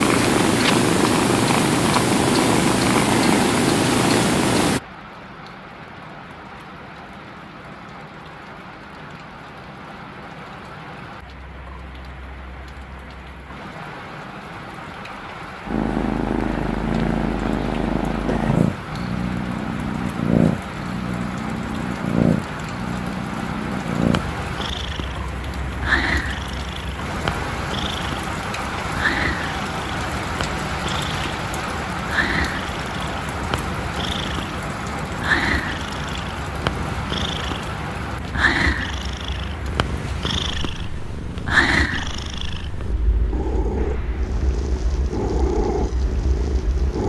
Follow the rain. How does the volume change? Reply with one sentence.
The volume of the rain goes up, then down.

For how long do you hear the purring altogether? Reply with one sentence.
The purring can be heard for 36 seconds in total.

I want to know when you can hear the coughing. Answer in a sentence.
You can't hear the coughing here.